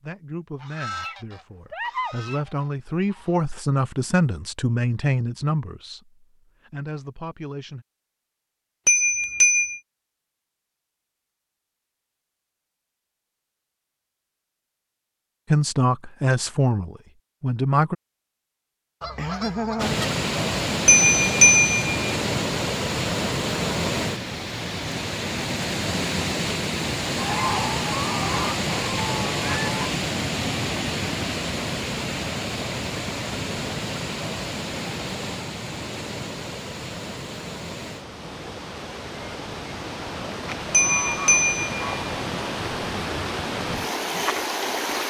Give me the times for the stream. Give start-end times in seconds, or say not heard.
19.8-45.0.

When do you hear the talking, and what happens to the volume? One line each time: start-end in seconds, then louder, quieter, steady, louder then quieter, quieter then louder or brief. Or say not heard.
0.0-7.8 louder then quieter
15.5-17.9 brief.